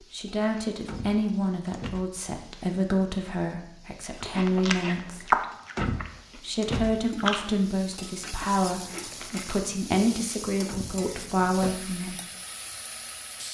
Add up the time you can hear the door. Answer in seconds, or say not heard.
4 s.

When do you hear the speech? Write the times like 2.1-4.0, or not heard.
0.1-5.3, 6.3-12.2.